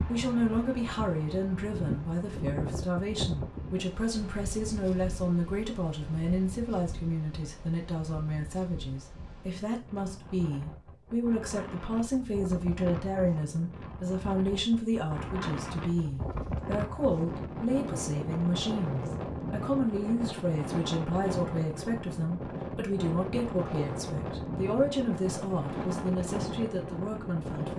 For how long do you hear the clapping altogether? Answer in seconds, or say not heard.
not heard.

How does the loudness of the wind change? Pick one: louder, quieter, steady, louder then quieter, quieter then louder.
quieter then louder.